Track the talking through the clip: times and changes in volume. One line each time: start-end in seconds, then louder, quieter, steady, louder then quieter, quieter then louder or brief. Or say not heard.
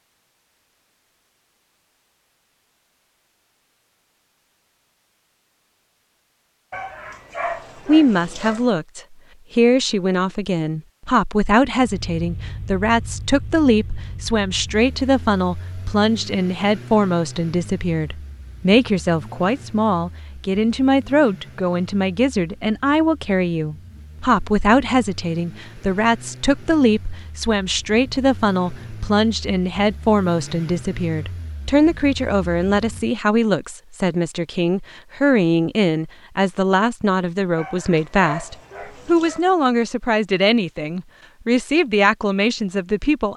7.8-43.3 steady.